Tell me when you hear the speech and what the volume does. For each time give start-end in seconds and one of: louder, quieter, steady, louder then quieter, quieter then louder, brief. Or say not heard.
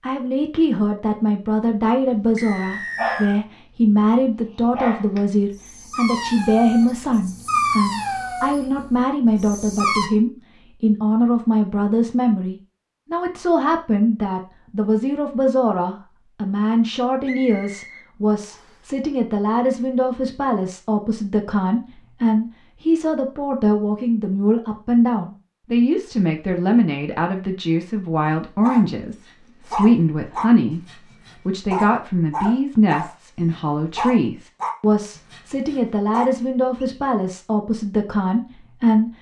0.0-39.1 steady.